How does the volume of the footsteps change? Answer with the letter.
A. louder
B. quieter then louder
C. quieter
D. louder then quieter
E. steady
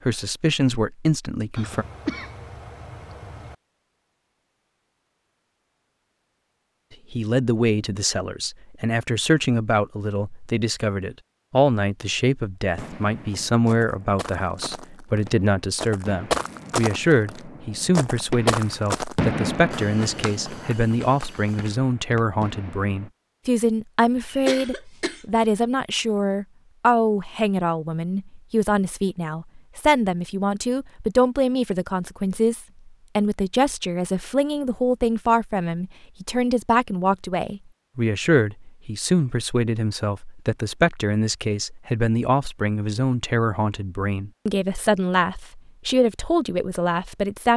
D.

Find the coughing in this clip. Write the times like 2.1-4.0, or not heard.
1.6-3.5, 24.2-25.4.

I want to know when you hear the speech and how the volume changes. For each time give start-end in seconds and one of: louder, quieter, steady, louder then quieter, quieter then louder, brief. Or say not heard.
0.1-1.9 brief
7.1-47.5 steady.